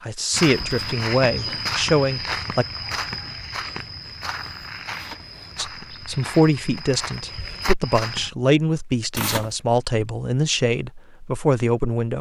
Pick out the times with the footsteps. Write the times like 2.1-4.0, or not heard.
0.3-8.3.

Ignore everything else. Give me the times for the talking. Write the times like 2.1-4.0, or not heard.
0.0-2.6, 5.5-12.1.